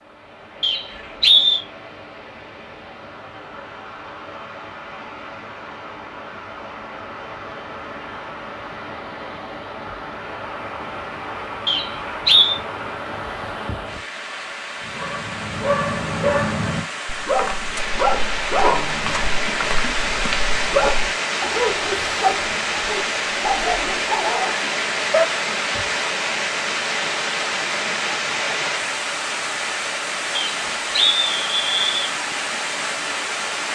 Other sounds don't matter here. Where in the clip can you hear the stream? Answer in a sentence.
You can hear the stream from 0.0 to 33.6 s.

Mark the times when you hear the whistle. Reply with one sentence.
You can hear the whistle from 0.6 to 1.6 s, from 11.7 to 12.6 s and from 30.4 to 32.0 s.